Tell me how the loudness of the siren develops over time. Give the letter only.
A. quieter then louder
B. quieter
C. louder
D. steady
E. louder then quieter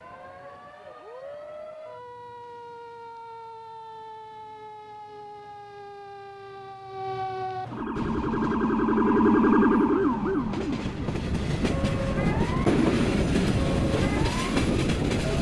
E.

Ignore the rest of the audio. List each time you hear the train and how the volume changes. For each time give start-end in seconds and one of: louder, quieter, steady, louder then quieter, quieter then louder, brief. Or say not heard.
8.0-15.3 louder.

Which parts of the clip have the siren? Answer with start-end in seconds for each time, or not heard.
0.0-15.3.